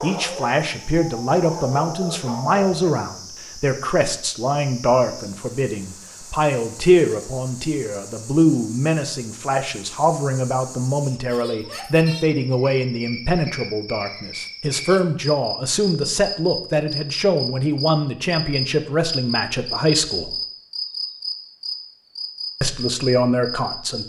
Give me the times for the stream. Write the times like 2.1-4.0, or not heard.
not heard.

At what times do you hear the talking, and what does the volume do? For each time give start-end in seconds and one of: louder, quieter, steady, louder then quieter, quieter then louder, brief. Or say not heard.
0.0-20.4 steady
22.6-24.0 brief.